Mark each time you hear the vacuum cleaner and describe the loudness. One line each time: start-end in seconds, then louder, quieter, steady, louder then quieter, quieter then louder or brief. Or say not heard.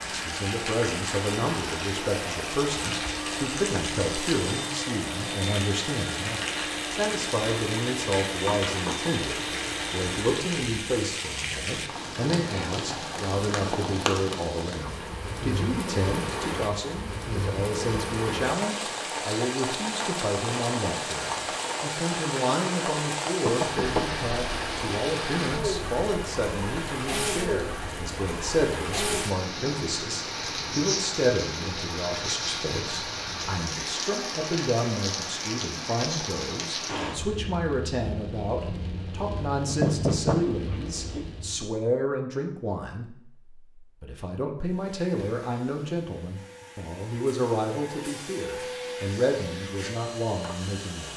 0.0-10.6 steady
44.6-51.1 louder.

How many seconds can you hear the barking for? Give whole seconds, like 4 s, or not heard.
not heard.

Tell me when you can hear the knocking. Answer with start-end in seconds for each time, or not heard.
8.4-9.2, 23.4-24.2, 39.6-41.2.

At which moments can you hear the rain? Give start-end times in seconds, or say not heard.
0.0-41.7.